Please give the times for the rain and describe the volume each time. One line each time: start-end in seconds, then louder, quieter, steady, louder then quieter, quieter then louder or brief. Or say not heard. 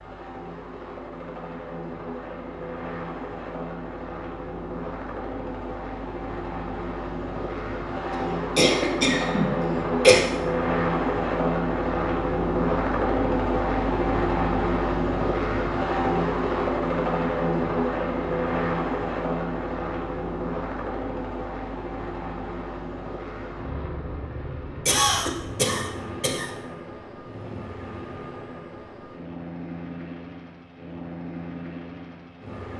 not heard.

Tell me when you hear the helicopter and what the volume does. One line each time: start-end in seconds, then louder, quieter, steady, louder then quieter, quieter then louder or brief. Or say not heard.
0.0-32.7 louder then quieter.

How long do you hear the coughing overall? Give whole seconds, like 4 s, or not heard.
4 s.